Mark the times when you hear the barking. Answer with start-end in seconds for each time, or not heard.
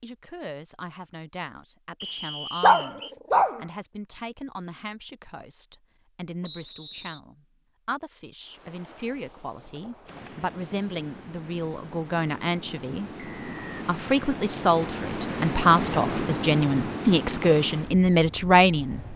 2.6-3.6.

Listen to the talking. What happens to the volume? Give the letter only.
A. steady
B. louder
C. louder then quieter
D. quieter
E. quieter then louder
B.